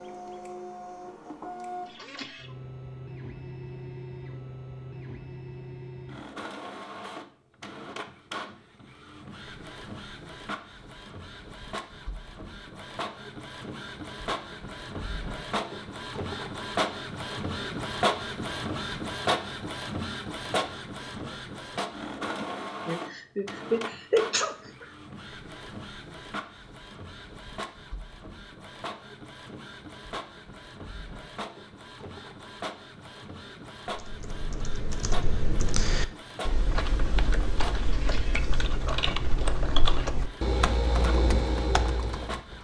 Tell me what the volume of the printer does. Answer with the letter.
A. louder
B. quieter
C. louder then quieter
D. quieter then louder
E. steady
C.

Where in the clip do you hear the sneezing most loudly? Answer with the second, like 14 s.
24 s.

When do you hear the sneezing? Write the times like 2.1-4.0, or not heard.
22.4-24.9.